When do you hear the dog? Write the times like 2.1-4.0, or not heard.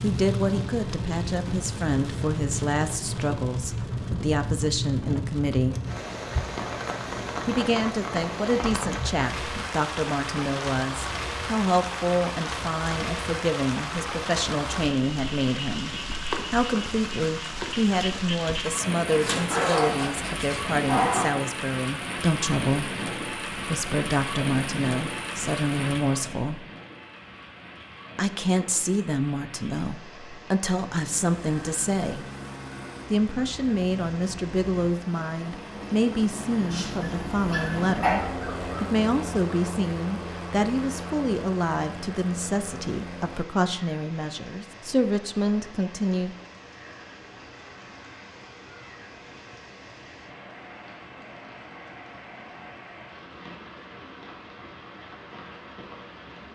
19.1-21.2, 36.7-38.6.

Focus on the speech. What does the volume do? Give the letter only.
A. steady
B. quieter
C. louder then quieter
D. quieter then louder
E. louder
A.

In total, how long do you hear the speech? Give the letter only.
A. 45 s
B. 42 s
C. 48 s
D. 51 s
B.